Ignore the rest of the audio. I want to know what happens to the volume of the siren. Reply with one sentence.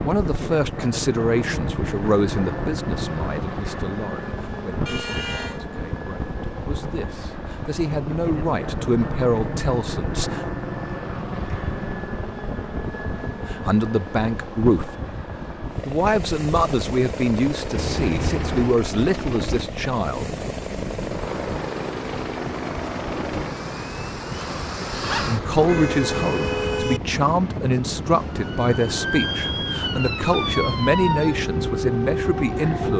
The volume of the siren stays about the same.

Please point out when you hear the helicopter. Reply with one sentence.
You can hear the helicopter from 0.0 to 32.9 s.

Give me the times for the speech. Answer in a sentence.
The speech can be heard from 0.0 to 10.4 s, from 13.4 to 14.9 s, from 15.8 to 20.3 s and from 24.8 to 32.9 s.